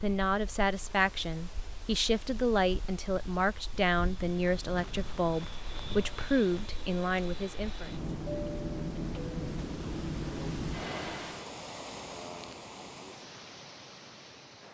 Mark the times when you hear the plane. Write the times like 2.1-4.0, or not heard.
0.1-11.6.